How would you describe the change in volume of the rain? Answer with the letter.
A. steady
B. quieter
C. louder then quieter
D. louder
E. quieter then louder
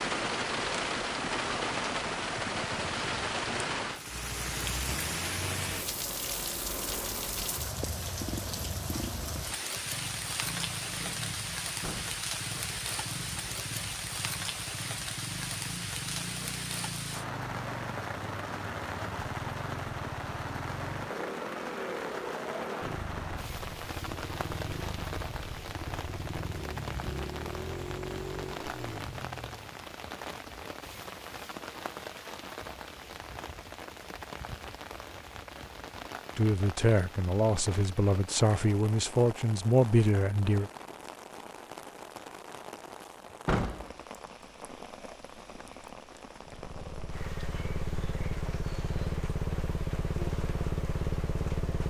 B.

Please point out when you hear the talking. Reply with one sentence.
You can hear the talking from 36.4 to 40.7 s.